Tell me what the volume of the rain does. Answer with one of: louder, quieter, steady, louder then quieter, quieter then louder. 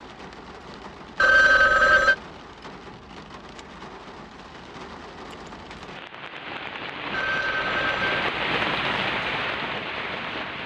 louder.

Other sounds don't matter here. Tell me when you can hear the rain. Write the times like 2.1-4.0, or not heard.
0.0-10.6.